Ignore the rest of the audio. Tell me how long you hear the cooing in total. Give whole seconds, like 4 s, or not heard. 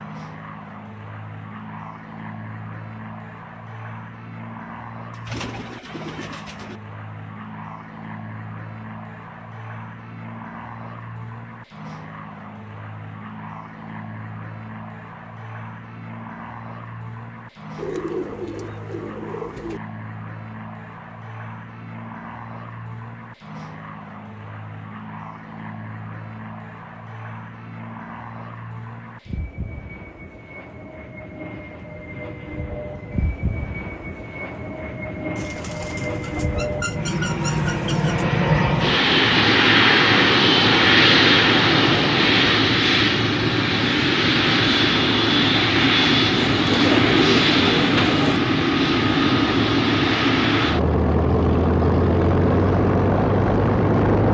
9 s.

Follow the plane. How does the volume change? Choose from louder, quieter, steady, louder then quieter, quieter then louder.
louder.